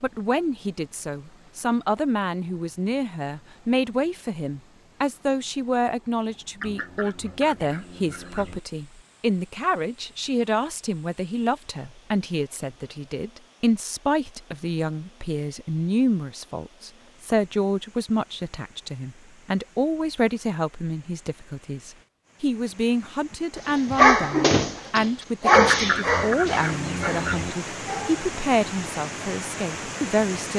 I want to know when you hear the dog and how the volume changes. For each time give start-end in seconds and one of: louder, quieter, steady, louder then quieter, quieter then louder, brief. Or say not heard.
23.6-28.2 quieter.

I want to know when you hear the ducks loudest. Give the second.
26 s.